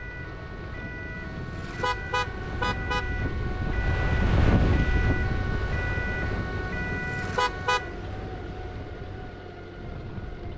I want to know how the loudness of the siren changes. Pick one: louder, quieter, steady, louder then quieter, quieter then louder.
louder.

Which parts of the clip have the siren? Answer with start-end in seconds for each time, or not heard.
0.0-8.0.